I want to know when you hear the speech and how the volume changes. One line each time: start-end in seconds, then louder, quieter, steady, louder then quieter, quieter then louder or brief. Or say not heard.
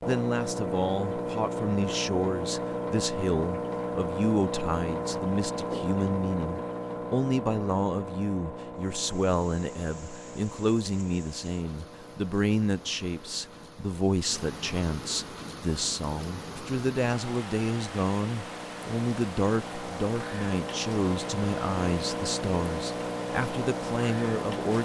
0.1-24.7 steady.